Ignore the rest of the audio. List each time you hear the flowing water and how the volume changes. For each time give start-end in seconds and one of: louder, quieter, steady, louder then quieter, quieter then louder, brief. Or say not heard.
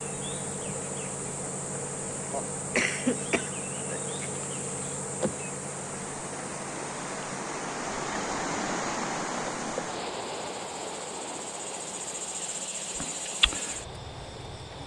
0.0-14.8 louder then quieter.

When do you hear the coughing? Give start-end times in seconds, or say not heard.
2.3-4.3.